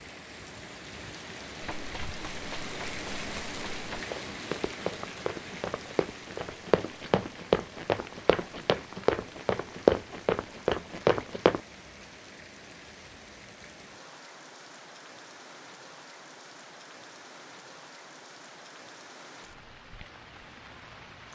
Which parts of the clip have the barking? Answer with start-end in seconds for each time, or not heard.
not heard.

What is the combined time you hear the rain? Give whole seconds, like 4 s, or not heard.
21 s.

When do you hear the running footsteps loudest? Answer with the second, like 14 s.
10 s.